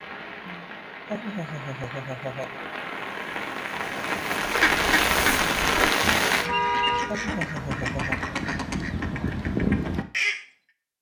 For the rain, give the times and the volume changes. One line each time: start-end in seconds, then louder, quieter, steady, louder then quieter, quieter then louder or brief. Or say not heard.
0.0-6.5 louder.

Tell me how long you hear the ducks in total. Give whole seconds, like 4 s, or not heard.
6 s.